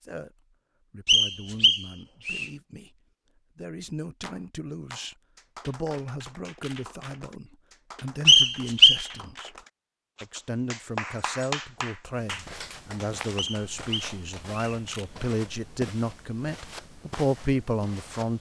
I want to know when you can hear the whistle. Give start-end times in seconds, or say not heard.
1.1-2.5, 8.2-9.1, 13.3-14.8.